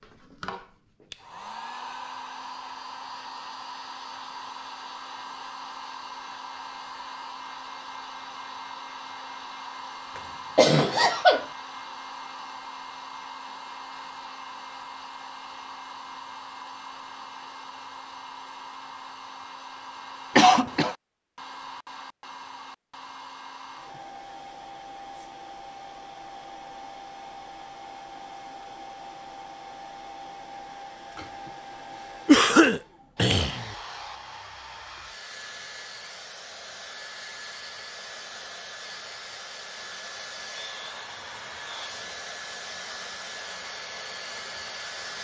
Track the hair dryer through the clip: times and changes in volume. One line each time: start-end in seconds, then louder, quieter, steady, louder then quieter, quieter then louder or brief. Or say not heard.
0.0-45.1 steady.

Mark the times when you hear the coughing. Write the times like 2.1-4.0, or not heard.
10.2-11.4, 20.4-20.9, 32.2-33.7.